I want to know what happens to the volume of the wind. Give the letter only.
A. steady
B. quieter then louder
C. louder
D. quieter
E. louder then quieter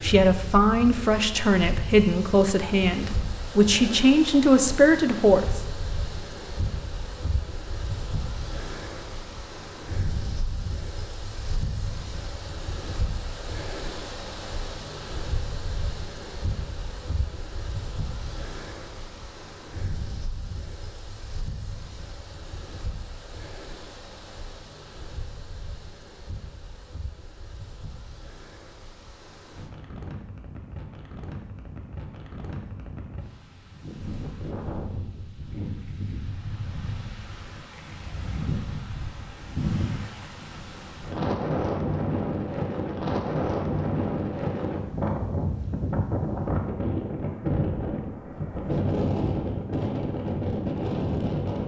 B.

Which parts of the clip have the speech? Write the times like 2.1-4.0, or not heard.
0.0-5.6.